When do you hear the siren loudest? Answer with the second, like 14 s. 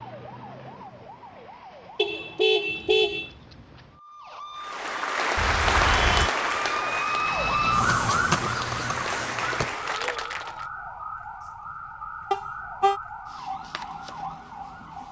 8 s.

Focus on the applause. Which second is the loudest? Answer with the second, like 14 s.
6 s.